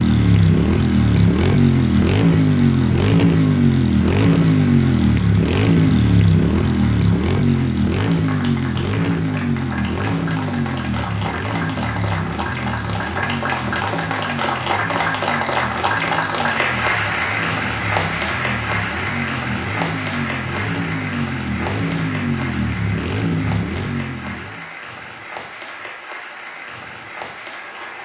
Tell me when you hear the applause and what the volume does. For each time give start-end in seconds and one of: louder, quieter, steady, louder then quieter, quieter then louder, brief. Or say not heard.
0.1-28.0 louder then quieter.